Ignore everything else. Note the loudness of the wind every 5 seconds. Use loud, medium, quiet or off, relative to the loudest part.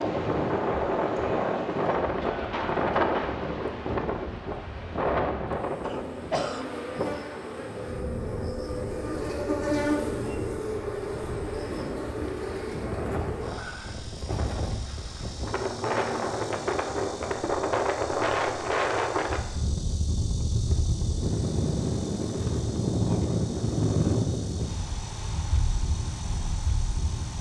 loud, medium, medium, loud, loud, medium.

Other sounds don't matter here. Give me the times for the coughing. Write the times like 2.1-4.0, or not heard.
5.8-6.7.